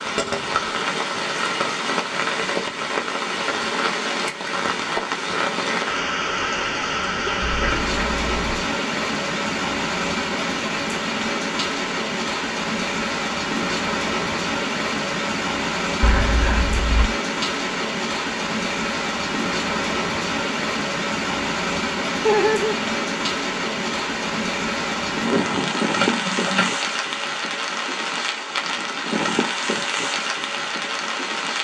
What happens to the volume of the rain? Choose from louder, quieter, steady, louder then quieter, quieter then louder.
steady.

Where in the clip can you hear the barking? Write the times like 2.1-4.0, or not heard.
not heard.